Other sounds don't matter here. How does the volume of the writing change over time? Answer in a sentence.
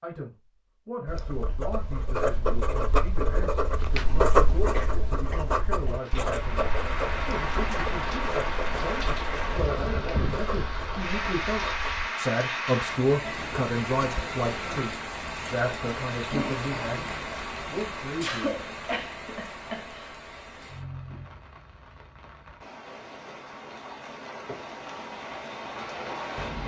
The volume of the writing goes up, then down.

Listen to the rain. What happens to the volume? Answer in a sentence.
The volume of the rain goes down.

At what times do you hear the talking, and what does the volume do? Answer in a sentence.
The talking can be heard from 0.0 to 17.1 s, getting louder; and briefly from 17.7 to 18.8 s.